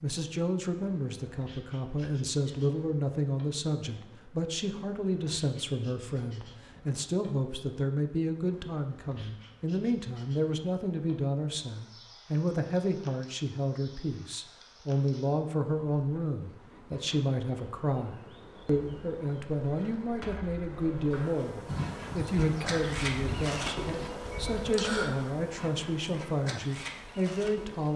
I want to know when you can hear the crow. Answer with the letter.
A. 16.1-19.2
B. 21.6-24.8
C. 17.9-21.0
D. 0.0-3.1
B.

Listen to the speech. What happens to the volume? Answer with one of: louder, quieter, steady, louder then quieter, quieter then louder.
steady.